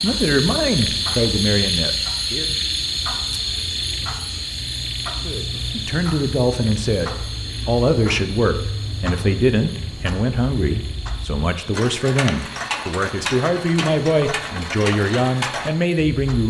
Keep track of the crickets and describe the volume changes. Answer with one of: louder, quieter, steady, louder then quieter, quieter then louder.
quieter.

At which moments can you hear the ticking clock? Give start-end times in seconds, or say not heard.
0.0-16.4.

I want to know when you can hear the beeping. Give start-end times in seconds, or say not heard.
not heard.